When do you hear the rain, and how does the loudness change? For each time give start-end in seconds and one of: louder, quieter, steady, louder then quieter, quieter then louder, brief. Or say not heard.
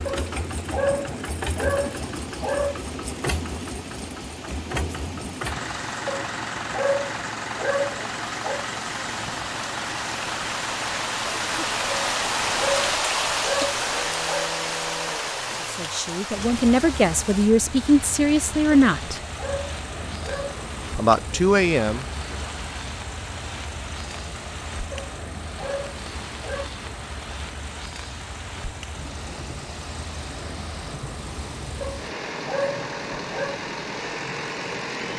0.0-34.9 louder then quieter.